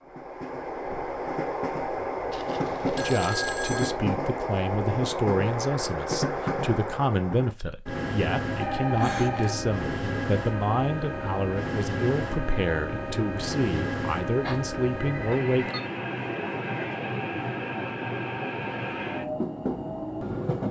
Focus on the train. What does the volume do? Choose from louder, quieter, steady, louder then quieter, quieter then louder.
steady.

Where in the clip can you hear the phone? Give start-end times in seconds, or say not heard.
2.3-4.0, 8.6-9.6, 14.4-15.8.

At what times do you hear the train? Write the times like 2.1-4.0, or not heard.
0.0-20.6.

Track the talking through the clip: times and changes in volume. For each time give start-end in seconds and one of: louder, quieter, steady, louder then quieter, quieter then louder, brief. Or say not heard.
3.0-15.8 steady.